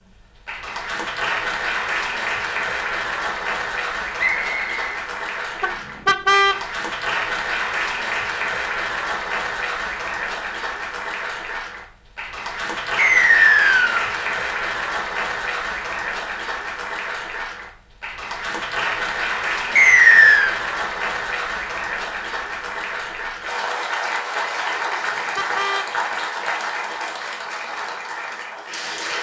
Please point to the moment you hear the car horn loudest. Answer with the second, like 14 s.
6 s.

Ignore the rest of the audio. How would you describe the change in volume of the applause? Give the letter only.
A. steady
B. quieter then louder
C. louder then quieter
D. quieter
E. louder
A.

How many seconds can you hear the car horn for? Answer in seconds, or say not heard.
2 s.